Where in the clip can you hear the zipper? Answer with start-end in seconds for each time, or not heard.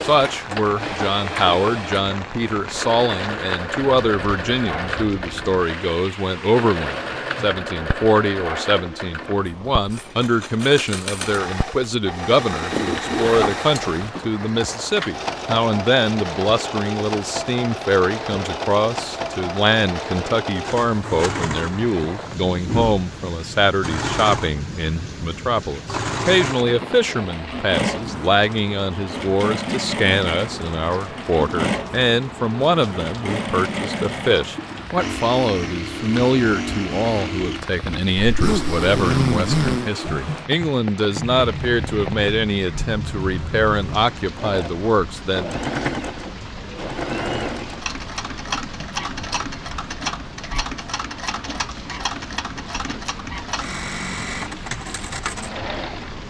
12.5-14.1, 38.2-39.9.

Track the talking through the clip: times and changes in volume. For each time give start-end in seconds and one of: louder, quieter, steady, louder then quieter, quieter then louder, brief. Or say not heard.
0.0-45.5 steady.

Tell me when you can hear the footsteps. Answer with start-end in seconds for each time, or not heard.
not heard.